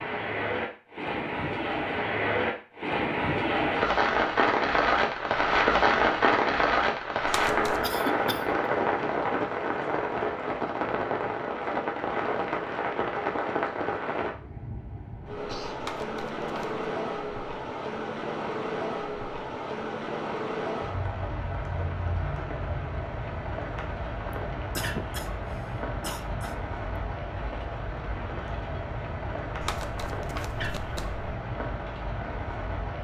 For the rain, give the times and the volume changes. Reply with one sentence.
The rain can be heard from 0.0 to 32.9 s, getting quieter.